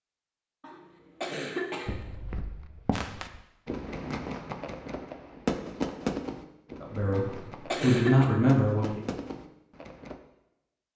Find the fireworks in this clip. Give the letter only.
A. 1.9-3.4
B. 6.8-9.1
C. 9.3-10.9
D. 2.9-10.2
D.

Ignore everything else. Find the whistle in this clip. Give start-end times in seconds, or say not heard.
not heard.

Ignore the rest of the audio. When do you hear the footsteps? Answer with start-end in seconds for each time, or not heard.
1.9-3.4.